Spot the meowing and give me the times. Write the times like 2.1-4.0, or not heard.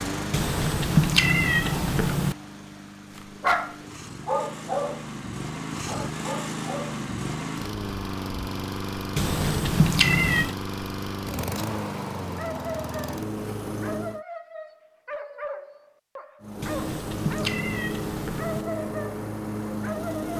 0.3-2.4, 9.2-10.6, 16.6-18.6.